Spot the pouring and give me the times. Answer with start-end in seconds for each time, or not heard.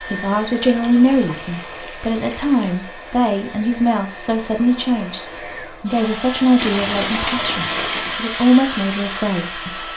0.5-2.8, 6.5-8.2.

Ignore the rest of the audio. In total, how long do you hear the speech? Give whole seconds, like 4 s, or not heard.
10 s.